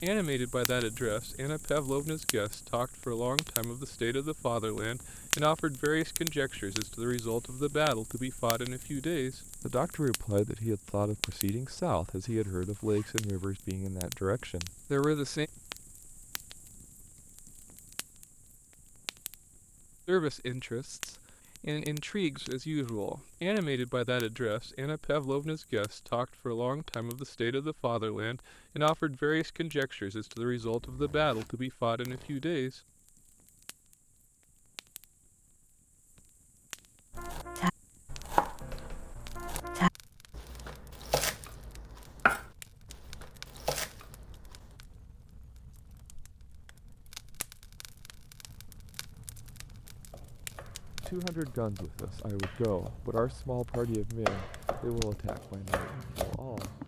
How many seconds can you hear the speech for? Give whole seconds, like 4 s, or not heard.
34 s.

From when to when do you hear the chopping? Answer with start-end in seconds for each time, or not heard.
37.1-44.8, 50.0-56.8.